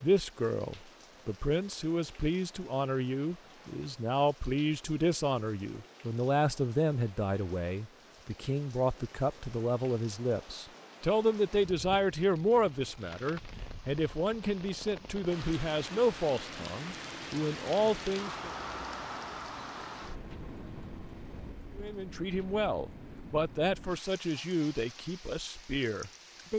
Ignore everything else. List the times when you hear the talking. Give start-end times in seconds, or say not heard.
0.0-18.5, 21.8-26.5.